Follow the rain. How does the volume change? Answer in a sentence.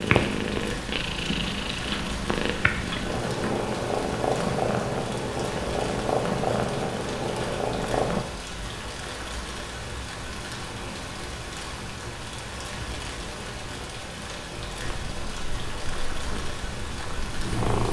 The loudness of the rain stays about the same.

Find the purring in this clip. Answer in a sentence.
The purring can be heard from 0.0 to 8.2 s and from 14.8 to 17.8 s.